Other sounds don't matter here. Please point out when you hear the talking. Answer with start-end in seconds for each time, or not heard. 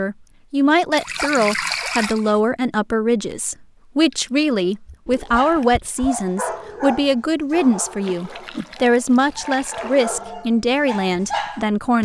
0.0-12.0.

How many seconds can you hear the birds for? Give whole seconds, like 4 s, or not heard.
not heard.